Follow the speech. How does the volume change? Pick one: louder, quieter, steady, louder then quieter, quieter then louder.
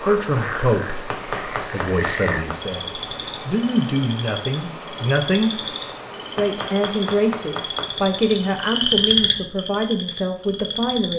steady.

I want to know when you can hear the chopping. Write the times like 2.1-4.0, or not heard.
1.1-2.6, 6.3-8.1.